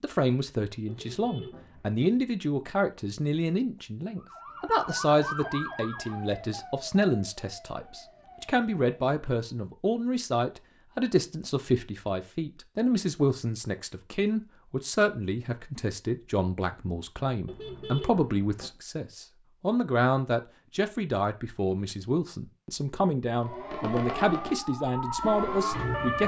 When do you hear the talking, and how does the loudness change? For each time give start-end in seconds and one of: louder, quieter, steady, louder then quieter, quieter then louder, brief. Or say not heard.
0.0-26.2 steady.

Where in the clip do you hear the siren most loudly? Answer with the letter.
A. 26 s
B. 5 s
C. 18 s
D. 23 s
A.